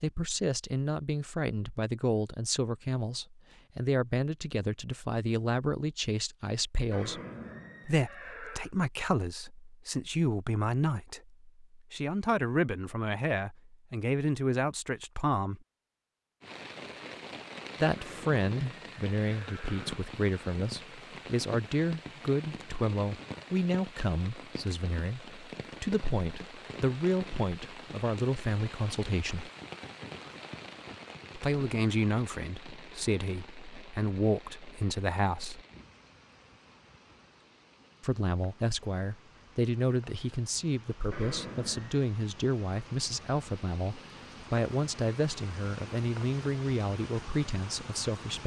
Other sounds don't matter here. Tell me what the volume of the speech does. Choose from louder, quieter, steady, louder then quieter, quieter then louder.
steady.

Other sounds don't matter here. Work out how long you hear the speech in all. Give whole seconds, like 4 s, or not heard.
41 s.